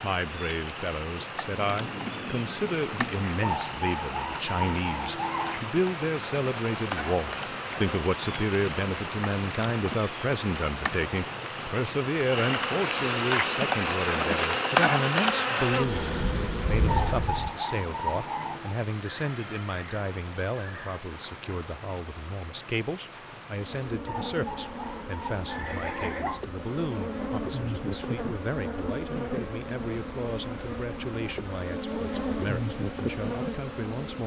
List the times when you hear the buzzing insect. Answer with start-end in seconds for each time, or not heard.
0.1-17.6, 23.6-34.2.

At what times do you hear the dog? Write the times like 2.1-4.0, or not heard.
3.4-5.6, 16.9-18.8, 24.1-26.4.